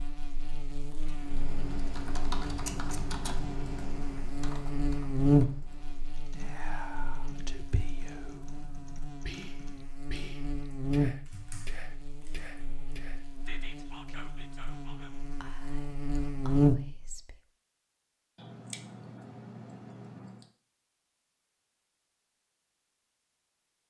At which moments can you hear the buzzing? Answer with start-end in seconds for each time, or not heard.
0.0-17.2.